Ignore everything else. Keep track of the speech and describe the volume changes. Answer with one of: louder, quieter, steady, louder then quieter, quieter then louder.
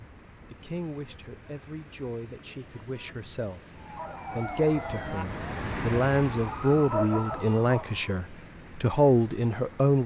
louder.